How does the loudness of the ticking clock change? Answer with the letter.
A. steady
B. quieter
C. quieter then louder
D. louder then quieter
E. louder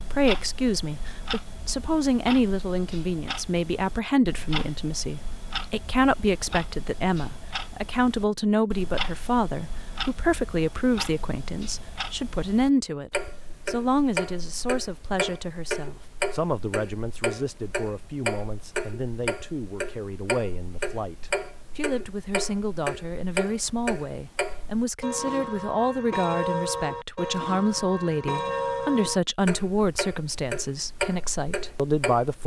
E.